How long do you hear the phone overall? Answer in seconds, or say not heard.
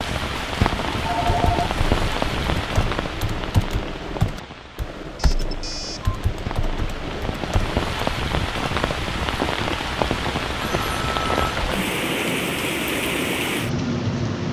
4 s.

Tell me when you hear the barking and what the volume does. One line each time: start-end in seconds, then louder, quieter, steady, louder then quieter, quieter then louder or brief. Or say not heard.
not heard.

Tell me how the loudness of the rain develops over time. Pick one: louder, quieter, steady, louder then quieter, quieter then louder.
quieter then louder.